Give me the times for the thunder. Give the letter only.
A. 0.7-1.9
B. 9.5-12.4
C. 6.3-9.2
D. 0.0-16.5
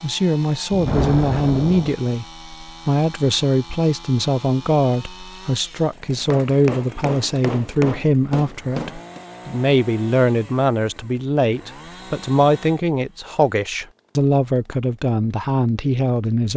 A.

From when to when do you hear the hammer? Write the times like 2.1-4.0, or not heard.
6.3-9.2.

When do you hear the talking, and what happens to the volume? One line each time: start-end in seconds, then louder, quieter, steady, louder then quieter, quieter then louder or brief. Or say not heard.
0.0-16.5 steady.